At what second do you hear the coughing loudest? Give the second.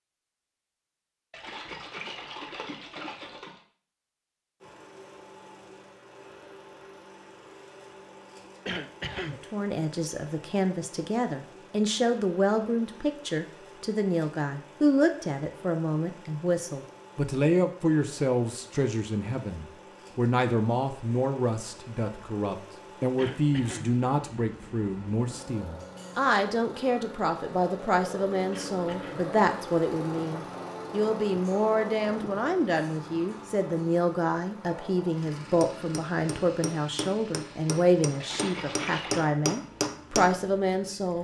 9 s.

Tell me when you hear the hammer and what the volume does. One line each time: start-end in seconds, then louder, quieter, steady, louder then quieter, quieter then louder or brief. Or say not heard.
35.4-40.4 louder.